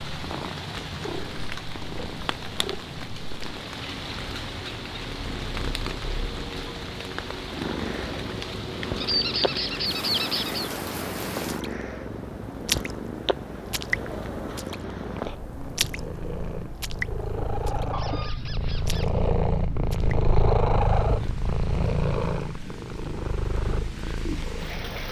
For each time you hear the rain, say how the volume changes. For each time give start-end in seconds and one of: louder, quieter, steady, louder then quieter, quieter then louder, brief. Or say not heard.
0.0-25.0 quieter.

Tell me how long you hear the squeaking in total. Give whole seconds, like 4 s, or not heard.
3 s.